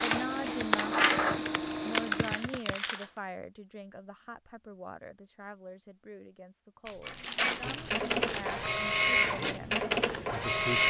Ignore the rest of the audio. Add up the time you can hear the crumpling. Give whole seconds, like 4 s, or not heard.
3 s.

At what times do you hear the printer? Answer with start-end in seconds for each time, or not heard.
0.0-2.5, 7.0-10.8.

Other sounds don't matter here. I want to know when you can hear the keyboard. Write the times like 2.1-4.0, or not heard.
0.2-2.8.